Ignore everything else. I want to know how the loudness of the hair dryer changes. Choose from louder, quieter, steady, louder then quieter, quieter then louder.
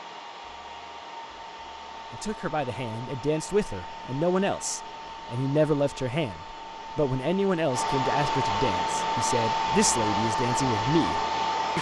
louder.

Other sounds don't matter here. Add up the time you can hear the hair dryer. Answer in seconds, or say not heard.
12 s.